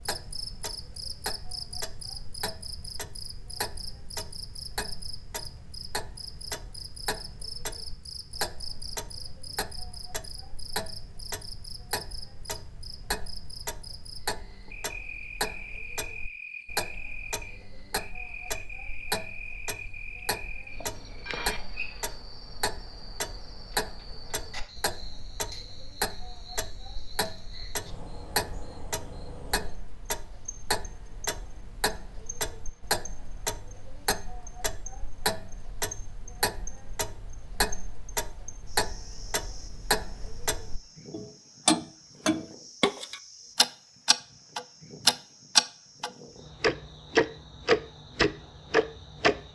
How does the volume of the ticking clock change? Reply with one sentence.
The loudness of the ticking clock goes up.